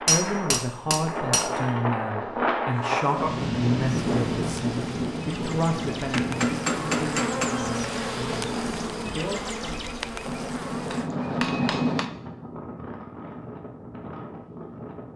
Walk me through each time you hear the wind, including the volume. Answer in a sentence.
The wind can be heard from 0.0 to 15.1 s, getting quieter.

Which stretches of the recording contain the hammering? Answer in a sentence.
The hammering can be heard from 0.1 to 1.5 s, from 6.1 to 7.7 s and from 10.2 to 12.1 s.